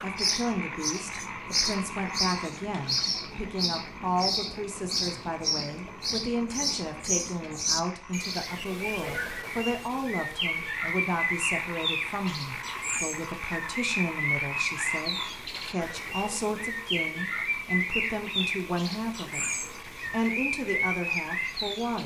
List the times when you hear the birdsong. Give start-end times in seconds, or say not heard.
0.0-22.0.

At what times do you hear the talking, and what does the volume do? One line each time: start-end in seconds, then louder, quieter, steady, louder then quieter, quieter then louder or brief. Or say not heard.
0.0-22.0 steady.